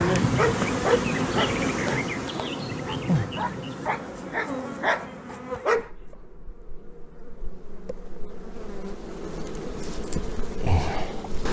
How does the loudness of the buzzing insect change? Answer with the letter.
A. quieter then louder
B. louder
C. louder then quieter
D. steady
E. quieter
A.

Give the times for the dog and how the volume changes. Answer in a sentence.
You can hear the dog from 0.3 to 5.9 s, getting quieter then louder.